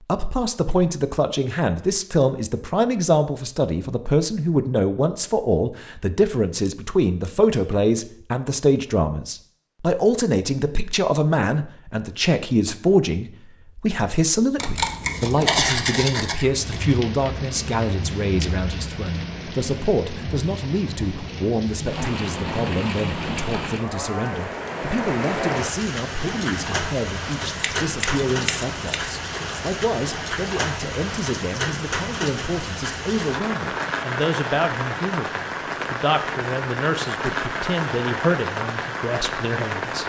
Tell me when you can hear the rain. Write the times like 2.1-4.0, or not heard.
16.5-40.0.